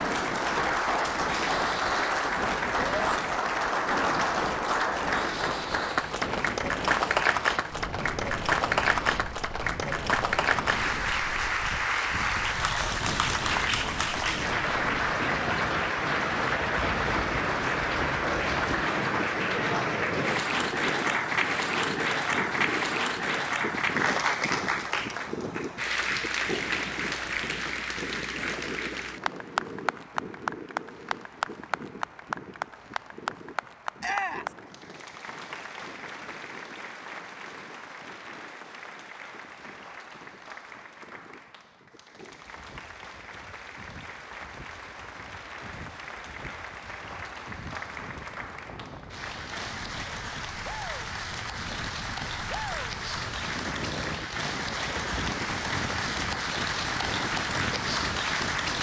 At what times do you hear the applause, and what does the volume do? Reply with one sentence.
The applause can be heard from 0.0 to 58.7 s, getting quieter then louder.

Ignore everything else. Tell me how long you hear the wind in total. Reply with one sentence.
The wind can be heard for 59 seconds in total.